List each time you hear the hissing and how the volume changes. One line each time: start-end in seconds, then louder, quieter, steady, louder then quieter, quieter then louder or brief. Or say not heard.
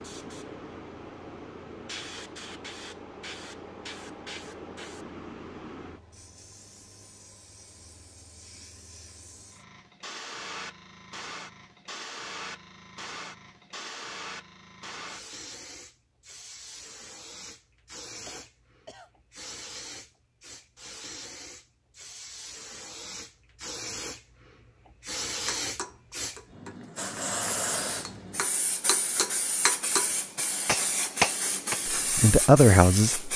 0.0-33.3 louder.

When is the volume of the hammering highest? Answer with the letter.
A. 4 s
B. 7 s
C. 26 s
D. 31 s
D.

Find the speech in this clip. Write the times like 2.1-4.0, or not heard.
31.9-33.3.